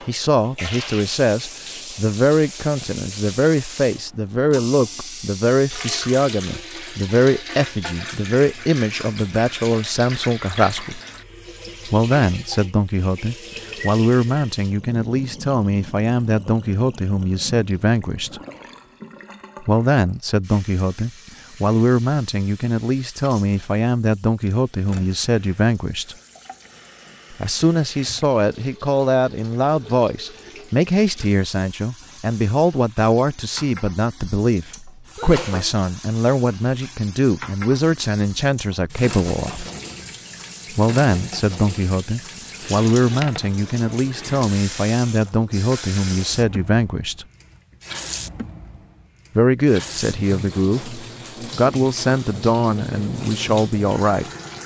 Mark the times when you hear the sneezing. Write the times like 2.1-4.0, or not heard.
35.1-35.8.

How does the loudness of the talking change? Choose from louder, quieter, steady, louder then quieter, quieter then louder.
steady.